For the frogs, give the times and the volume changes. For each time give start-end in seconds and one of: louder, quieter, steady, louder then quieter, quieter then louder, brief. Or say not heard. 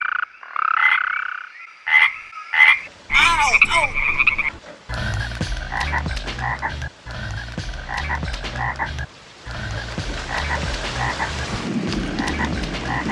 0.0-13.0 quieter.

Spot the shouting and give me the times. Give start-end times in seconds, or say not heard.
3.1-3.9.